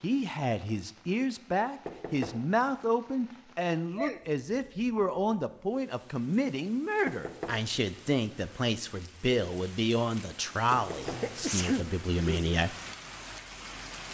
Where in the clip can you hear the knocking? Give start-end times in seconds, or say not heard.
1.9-2.5, 7.0-7.7, 10.7-11.3.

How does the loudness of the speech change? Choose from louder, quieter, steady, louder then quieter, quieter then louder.
steady.